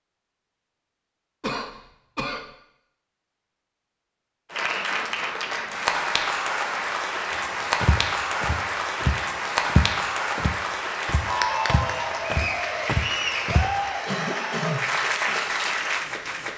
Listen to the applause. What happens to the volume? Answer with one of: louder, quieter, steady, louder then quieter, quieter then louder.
steady.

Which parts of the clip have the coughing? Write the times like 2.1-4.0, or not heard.
1.4-2.5, 14.1-14.9.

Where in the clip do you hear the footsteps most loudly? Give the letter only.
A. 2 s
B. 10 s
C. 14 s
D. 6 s
B.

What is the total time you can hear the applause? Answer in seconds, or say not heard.
12 s.